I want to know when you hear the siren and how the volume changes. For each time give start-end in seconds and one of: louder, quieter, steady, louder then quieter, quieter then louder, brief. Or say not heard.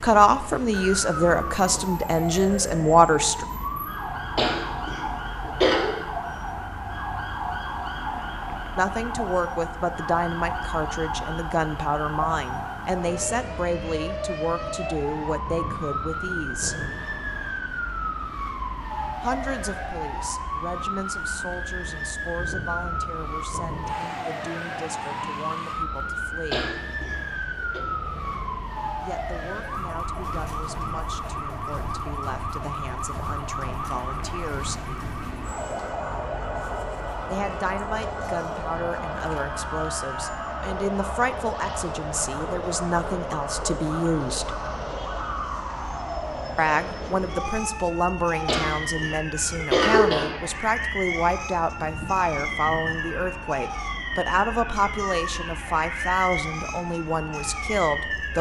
0.0-58.3 steady.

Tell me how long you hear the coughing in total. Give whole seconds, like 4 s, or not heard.
5 s.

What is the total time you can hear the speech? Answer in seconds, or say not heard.
44 s.